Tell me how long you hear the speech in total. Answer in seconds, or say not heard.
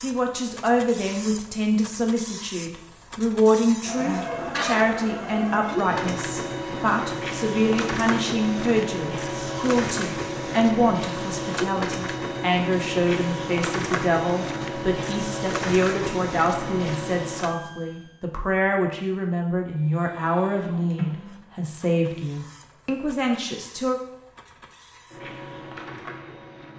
24 s.